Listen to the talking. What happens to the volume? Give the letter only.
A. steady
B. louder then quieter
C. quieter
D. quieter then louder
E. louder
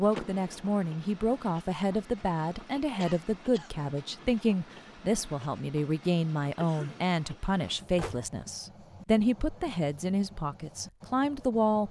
A.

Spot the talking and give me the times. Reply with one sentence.
The talking can be heard from 0.0 to 11.8 s.